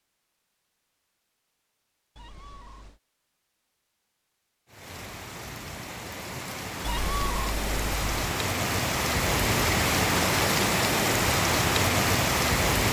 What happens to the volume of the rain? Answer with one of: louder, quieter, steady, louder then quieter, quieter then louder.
louder.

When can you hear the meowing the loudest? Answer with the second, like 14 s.
7 s.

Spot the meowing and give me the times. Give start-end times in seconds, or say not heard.
2.1-3.0, 6.8-8.1.